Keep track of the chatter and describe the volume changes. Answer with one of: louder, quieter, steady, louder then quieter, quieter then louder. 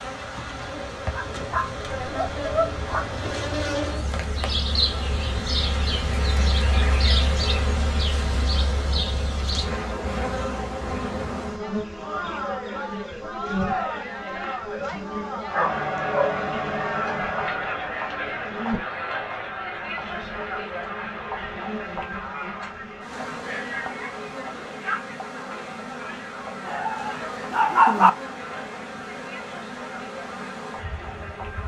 quieter.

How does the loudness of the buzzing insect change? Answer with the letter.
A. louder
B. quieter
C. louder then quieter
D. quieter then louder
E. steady
B.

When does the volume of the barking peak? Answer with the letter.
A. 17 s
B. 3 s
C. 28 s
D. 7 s
C.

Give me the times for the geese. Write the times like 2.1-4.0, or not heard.
not heard.